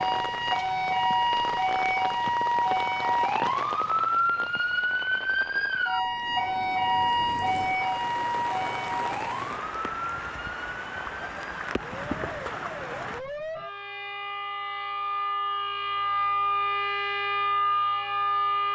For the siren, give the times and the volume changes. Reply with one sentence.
You can hear the siren from 0.0 to 18.7 s, getting quieter then louder.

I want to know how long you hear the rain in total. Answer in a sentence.
The rain can be heard for 13 seconds in total.